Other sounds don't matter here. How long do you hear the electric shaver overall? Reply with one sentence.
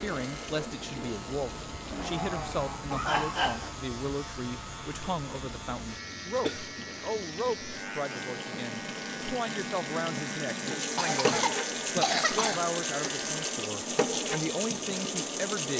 You can hear the electric shaver for 14 seconds altogether.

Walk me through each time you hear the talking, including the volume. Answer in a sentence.
The talking can be heard from 0.0 to 15.7 s, at a steady volume.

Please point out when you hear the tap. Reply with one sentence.
You can hear the tap from 0.0 to 15.7 s.